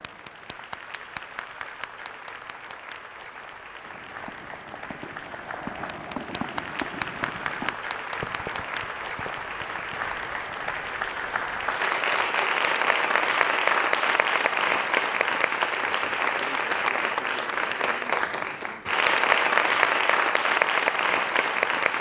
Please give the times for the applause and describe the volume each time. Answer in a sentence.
The applause can be heard from 0.0 to 21.9 s, getting louder.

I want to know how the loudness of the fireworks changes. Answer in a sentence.
The volume of the fireworks goes up, then down.